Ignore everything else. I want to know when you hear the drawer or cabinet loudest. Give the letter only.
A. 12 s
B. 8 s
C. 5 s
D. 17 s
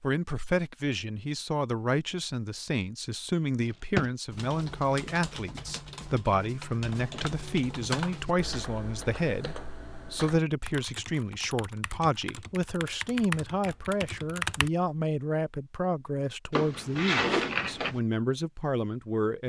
D.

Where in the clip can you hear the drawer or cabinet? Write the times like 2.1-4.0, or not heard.
3.6-4.1, 6.8-7.4, 16.5-18.0.